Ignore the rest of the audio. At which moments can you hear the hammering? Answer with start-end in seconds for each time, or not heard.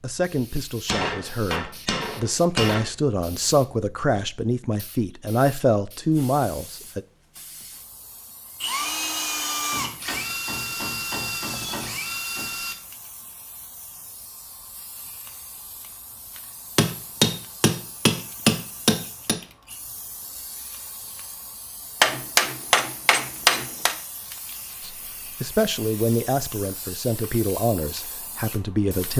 0.8-2.9, 9.7-12.5, 16.8-19.4, 22.0-23.9.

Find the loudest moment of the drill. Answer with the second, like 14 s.
9 s.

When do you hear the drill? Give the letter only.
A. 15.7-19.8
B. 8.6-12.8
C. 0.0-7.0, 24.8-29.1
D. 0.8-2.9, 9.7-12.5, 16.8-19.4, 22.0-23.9
B.